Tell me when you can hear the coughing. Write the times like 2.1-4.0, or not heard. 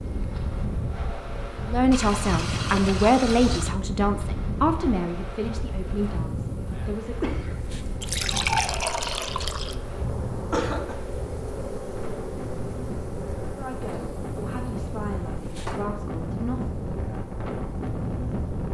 7.2-7.7, 10.0-11.0.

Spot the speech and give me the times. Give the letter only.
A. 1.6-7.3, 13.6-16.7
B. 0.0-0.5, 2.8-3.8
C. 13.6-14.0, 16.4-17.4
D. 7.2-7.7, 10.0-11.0
A.